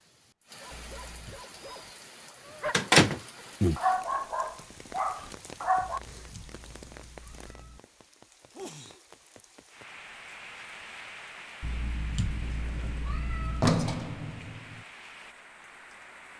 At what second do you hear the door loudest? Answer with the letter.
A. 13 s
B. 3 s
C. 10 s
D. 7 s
B.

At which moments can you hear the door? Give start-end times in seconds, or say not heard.
2.7-3.8, 12.4-14.8.